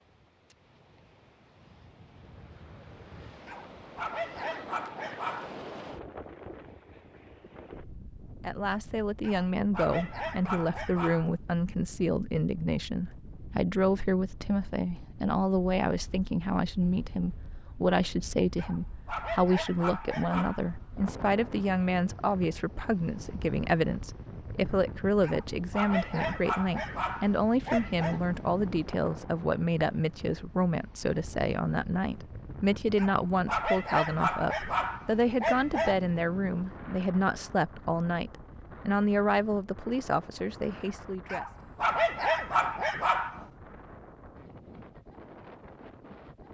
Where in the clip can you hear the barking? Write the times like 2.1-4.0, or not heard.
3.5-5.5, 9.2-11.3, 18.6-21.1, 25.2-28.2, 33.0-36.0, 41.3-43.5.